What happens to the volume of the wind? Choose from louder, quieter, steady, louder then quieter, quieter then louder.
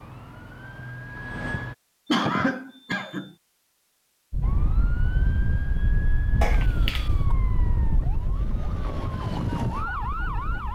quieter.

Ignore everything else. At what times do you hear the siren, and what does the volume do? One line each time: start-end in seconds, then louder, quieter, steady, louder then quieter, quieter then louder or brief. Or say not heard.
0.0-1.8 brief
4.4-10.7 louder.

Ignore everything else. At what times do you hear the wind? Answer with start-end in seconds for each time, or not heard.
4.3-10.7.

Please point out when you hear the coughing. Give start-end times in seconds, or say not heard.
2.0-3.4, 6.4-7.3.